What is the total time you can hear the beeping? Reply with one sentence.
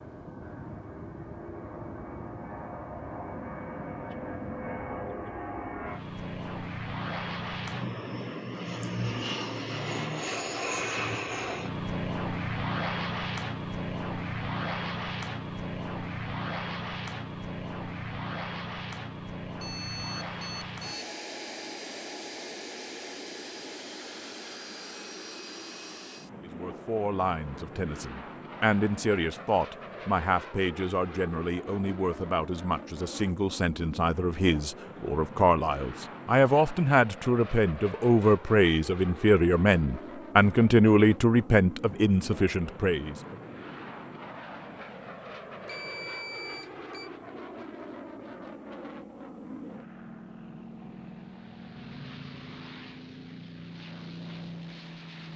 The beeping can be heard for 3 seconds in total.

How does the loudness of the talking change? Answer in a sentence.
The volume of the talking goes up.